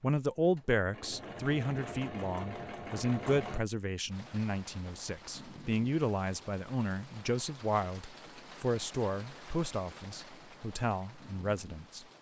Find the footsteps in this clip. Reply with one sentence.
You can't hear the footsteps here.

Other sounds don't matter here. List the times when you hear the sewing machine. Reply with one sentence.
You can hear the sewing machine from 0.5 to 3.6 s.